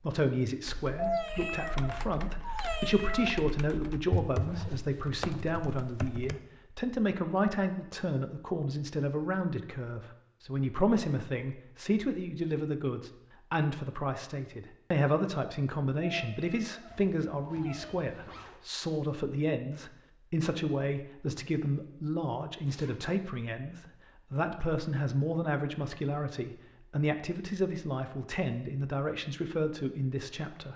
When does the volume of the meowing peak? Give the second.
1 s.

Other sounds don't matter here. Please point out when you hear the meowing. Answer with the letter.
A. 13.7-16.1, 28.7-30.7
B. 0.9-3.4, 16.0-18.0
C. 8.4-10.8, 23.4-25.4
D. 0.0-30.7
B.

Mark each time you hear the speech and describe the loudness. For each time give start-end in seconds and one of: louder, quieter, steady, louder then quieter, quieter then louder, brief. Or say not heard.
0.0-30.7 steady.